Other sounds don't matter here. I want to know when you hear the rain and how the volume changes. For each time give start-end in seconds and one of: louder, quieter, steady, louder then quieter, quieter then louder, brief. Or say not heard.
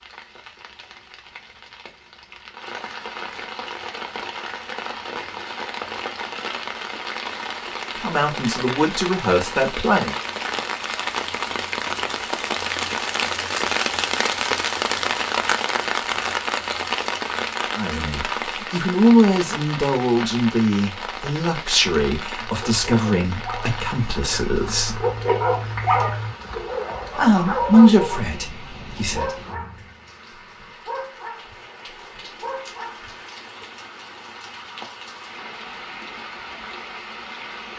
0.0-37.7 louder then quieter.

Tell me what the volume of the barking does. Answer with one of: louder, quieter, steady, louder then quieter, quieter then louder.
louder then quieter.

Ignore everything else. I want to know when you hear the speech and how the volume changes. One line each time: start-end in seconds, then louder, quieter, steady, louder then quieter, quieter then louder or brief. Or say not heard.
8.0-10.2 brief
17.8-25.1 quieter
27.1-29.4 brief.